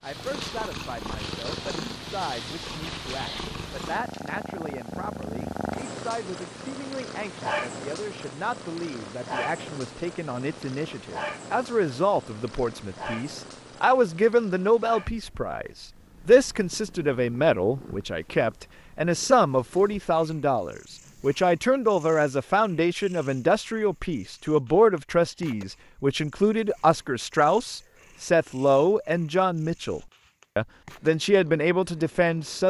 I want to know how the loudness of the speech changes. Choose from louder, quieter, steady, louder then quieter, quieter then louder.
louder.